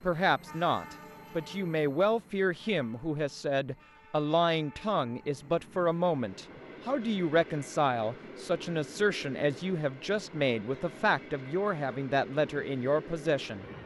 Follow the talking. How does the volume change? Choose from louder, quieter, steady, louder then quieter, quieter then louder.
steady.